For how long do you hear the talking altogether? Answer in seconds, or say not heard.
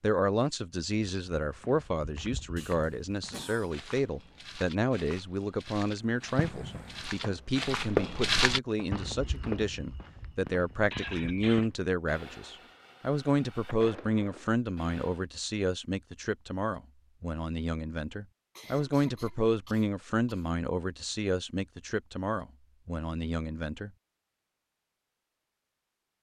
24 s.